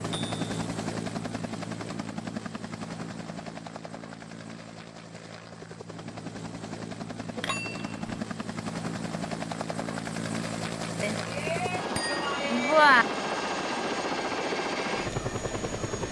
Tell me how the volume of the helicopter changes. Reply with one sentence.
The loudness of the helicopter goes down, then up.